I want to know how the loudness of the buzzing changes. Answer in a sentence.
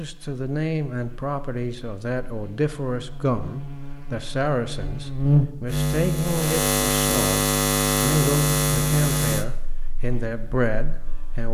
The volume of the buzzing goes up, then down.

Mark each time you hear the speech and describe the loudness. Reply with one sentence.
You can hear the speech from 0.0 to 11.4 s, at a steady volume.